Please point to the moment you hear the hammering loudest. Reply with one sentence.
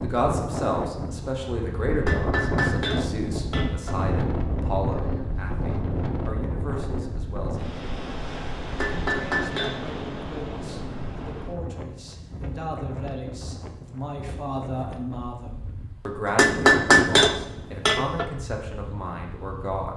The loudest moment of the hammering is at 17 seconds.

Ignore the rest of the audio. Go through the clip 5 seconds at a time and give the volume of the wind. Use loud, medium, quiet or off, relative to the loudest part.
loud, loud, medium, quiet.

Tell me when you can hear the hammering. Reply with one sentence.
You can hear the hammering from 1.9 to 4.0 s, from 8.7 to 9.8 s and from 16.2 to 18.2 s.